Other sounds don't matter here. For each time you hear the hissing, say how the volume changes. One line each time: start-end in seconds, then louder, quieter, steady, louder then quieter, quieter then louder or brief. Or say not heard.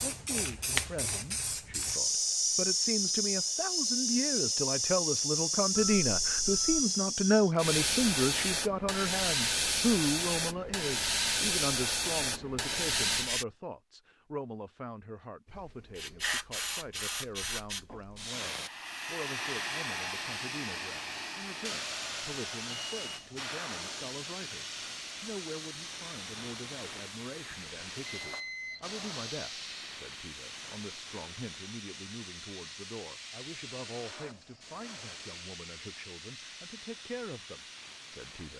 0.0-13.4 steady
15.5-38.5 quieter.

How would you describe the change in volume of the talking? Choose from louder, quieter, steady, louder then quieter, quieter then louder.
quieter.